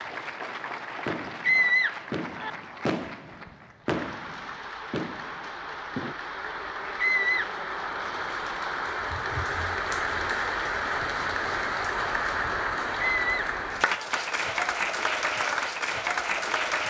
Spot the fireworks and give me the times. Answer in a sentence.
You can hear the fireworks from 1.1 to 6.2 s.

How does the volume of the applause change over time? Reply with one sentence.
The loudness of the applause goes up.